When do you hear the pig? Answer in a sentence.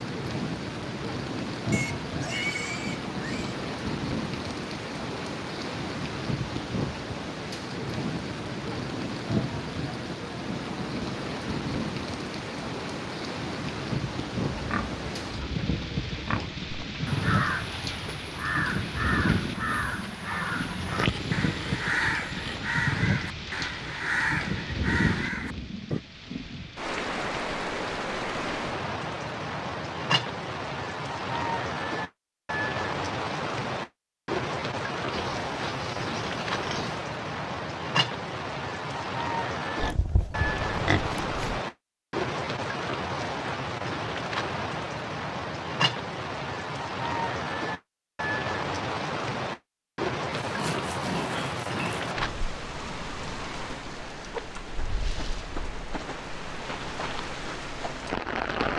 You can hear the pig from 1.7 to 3.5 s, from 14.5 to 16.5 s, from 20.8 to 22.6 s, from 35.1 to 37.0 s, from 39.8 to 41.6 s and from 50.3 to 52.1 s.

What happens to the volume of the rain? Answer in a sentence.
The volume of the rain stays about the same.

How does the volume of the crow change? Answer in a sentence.
The loudness of the crow stays about the same.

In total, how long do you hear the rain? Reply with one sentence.
The rain can be heard for 59 seconds in total.